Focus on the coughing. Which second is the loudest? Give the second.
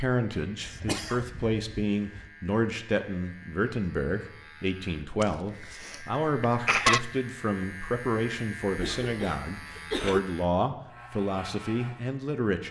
7 s.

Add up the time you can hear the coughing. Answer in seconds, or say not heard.
5 s.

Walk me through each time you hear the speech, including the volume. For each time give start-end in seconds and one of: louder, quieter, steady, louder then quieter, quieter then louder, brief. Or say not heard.
0.0-12.6 steady.